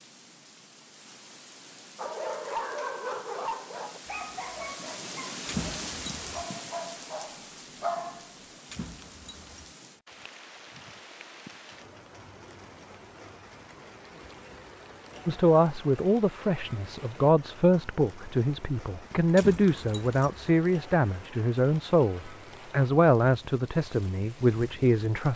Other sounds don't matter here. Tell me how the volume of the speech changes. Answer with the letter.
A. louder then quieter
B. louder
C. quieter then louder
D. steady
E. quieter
D.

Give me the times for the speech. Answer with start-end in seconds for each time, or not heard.
15.2-25.3.